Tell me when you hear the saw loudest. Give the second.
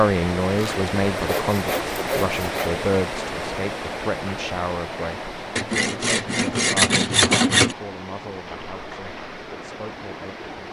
7 s.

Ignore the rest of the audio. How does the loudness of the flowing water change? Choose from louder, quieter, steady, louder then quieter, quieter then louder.
quieter.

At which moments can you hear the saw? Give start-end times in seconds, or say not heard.
0.6-2.7, 5.5-7.8.